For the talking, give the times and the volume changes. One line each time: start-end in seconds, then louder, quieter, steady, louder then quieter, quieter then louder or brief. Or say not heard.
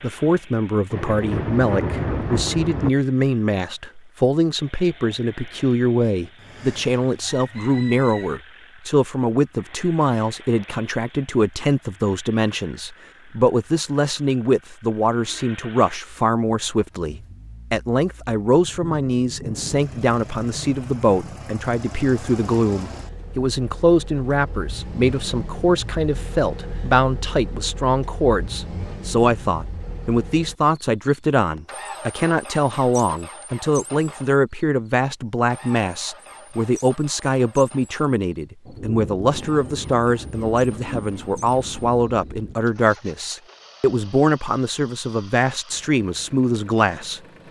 0.0-47.2 steady.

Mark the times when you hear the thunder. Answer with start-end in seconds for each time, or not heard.
0.9-2.9, 18.6-21.4, 38.6-42.5.